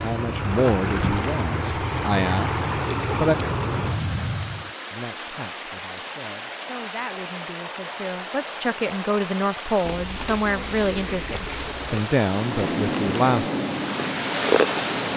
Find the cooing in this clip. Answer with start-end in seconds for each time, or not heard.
9.8-12.0.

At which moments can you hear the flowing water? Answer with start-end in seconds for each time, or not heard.
0.0-15.1.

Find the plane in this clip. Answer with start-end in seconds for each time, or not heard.
0.0-4.7, 12.3-15.1.